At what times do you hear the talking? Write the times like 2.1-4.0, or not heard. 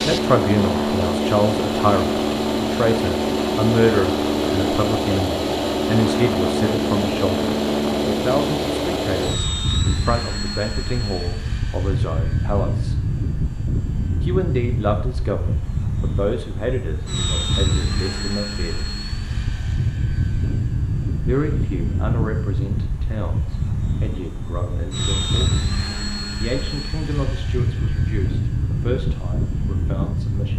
0.1-12.9, 14.2-18.9, 21.2-25.6, 26.4-30.5.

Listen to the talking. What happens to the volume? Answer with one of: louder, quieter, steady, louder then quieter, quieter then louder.
quieter.